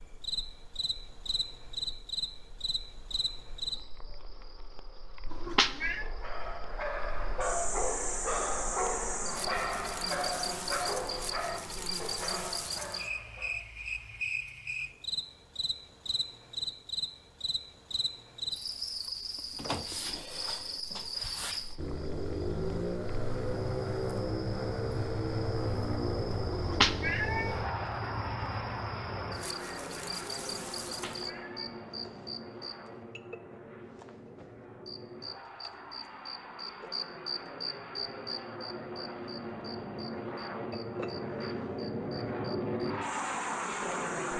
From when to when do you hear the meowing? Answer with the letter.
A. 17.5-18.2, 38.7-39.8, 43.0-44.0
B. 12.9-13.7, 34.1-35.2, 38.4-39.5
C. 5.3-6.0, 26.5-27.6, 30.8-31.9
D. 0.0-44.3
C.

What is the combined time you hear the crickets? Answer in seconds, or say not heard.
44 s.